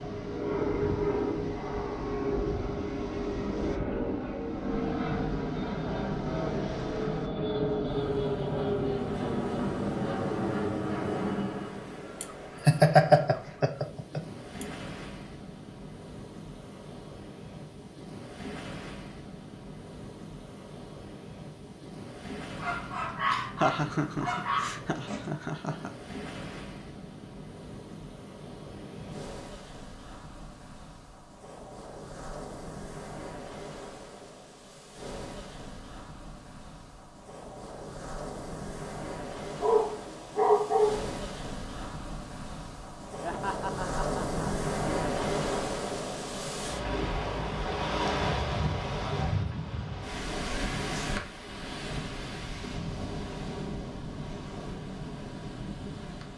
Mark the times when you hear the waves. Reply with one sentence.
The waves can be heard from 0.0 to 56.3 s.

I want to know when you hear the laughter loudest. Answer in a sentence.
The loudest moment of the laughter is at 13 seconds.